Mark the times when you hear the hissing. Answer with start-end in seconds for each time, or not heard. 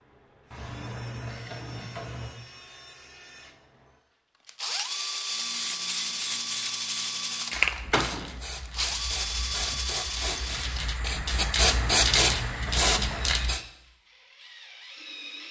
5.2-13.6.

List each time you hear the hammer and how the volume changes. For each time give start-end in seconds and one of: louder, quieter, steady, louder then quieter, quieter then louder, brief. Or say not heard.
not heard.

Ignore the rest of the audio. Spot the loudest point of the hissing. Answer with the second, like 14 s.
12 s.